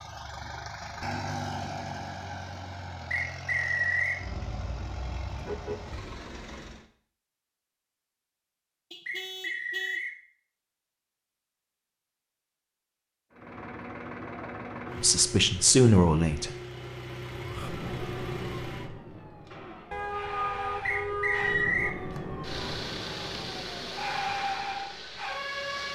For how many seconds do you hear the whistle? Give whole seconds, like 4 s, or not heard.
3 s.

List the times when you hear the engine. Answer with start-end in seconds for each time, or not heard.
0.0-6.8, 13.3-20.0, 21.9-25.8.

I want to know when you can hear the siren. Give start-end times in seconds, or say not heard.
17.4-25.8.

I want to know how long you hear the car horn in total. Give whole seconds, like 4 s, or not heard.
5 s.